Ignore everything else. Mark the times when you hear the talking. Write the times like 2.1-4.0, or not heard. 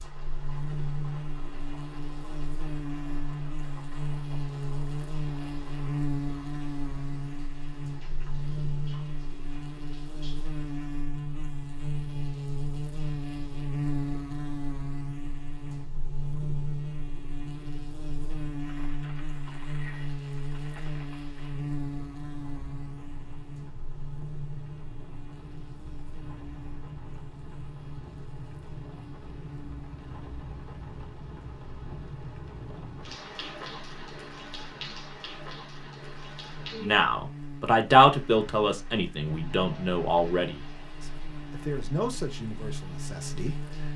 36.8-43.9.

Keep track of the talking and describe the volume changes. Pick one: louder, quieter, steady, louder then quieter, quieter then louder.
quieter.